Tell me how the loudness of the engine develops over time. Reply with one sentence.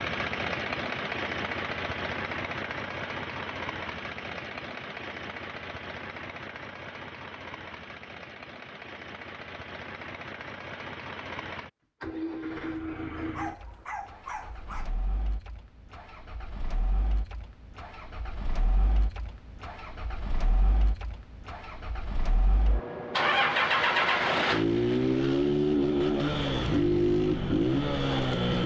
The loudness of the engine goes down, then up.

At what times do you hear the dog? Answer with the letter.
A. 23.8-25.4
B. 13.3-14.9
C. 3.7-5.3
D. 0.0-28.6
B.